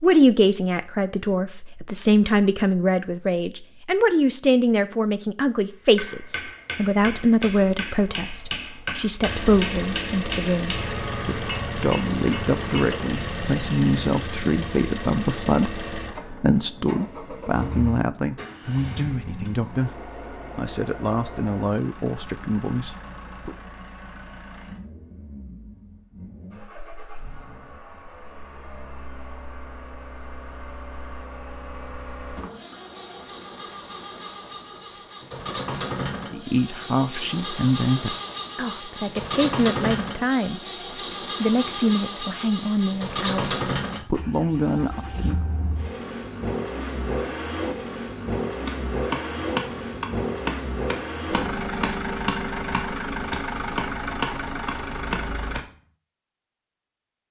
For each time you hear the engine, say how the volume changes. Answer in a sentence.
The engine can be heard from 9.2 to 55.6 s, getting quieter then louder.